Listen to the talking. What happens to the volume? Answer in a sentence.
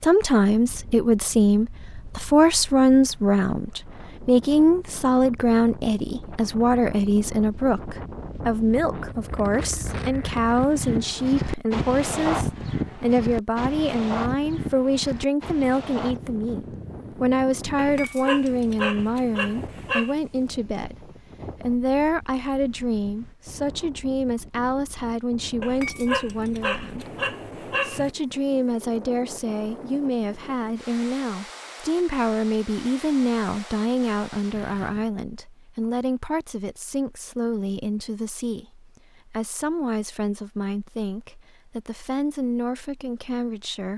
The loudness of the talking goes down.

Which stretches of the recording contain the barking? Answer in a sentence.
The barking can be heard from 17.8 to 20.1 s and from 25.6 to 28.1 s.